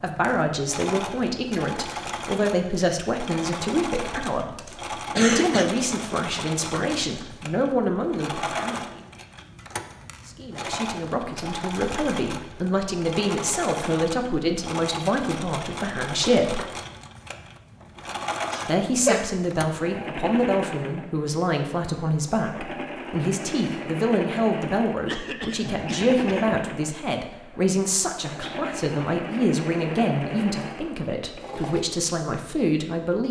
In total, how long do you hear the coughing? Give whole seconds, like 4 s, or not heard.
4 s.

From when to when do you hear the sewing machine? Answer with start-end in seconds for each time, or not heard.
0.0-31.9.